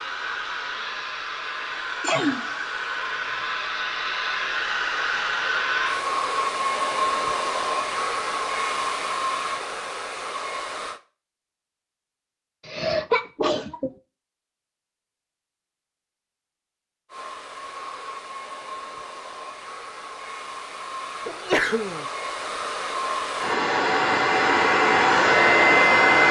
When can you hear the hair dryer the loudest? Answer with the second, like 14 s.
26 s.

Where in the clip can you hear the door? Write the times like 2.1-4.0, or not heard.
not heard.